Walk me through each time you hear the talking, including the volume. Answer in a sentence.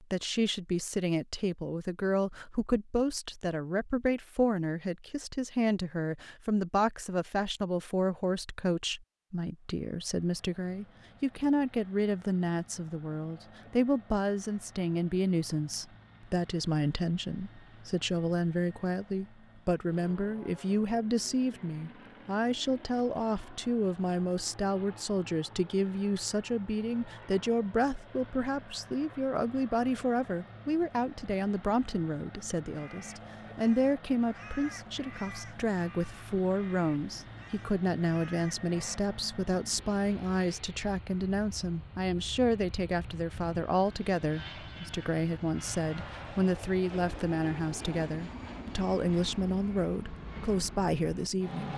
The talking can be heard from 0.0 to 51.7 s, at a steady volume.